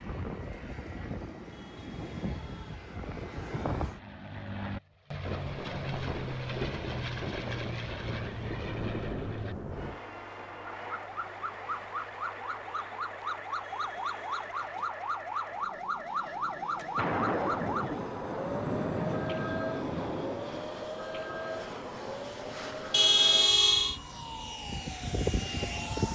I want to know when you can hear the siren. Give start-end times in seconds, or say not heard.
10.7-26.0.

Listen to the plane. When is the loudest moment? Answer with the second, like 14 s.
26 s.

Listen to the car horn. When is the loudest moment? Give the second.
23 s.